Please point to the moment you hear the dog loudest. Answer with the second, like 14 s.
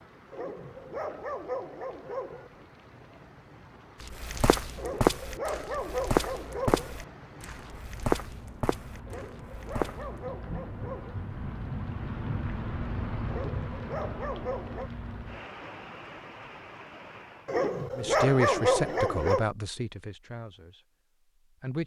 19 s.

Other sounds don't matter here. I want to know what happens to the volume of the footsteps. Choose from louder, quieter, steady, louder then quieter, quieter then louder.
quieter.